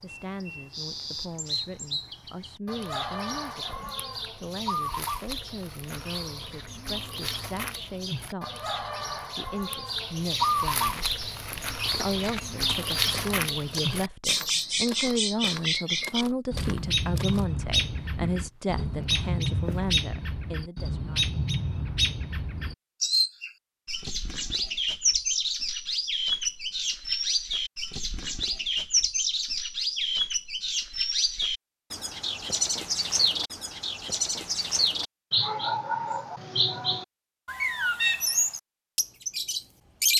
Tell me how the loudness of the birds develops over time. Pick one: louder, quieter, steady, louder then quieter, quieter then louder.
louder.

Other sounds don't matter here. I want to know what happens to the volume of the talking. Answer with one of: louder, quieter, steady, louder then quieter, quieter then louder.
louder.